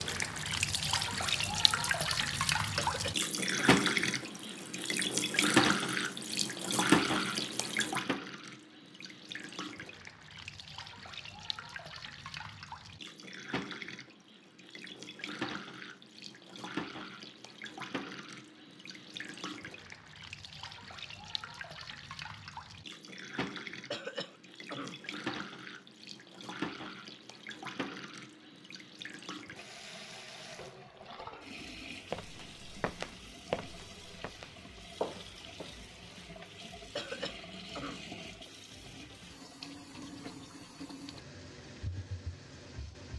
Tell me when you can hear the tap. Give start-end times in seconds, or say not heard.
0.0-43.1.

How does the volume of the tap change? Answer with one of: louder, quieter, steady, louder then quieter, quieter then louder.
quieter.